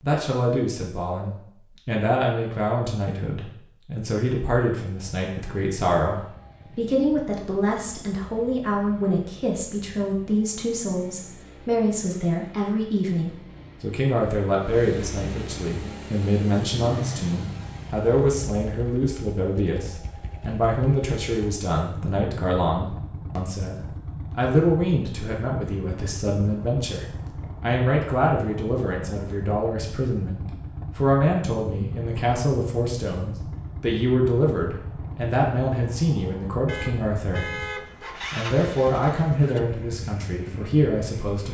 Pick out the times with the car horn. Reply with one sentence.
You can hear the car horn from 36.6 to 38.1 s.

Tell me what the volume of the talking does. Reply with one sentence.
The loudness of the talking stays about the same.